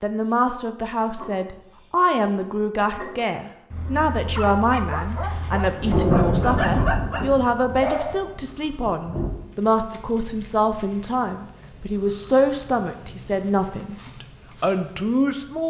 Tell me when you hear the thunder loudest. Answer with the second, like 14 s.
6 s.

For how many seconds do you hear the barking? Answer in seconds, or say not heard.
7 s.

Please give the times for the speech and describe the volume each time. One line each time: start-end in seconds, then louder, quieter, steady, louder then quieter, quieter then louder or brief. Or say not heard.
0.0-15.6 steady.